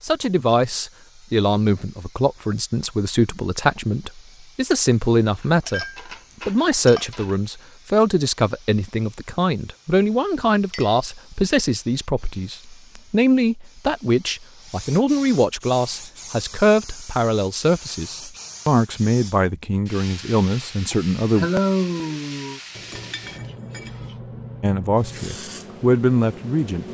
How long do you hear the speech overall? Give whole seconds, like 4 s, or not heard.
23 s.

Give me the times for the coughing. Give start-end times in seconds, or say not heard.
20.9-22.6.